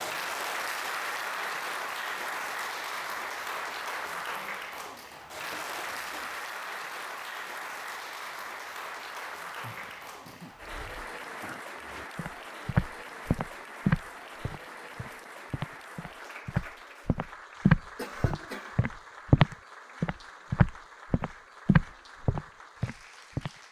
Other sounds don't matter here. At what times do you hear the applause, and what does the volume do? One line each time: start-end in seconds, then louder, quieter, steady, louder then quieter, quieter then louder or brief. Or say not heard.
0.0-23.6 quieter.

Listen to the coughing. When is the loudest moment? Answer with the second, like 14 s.
18 s.